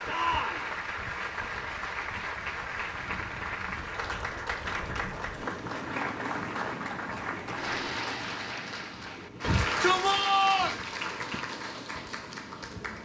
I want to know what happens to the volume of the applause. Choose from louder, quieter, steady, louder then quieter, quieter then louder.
steady.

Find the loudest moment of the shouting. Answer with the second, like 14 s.
10 s.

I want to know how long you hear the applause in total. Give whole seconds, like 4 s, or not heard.
13 s.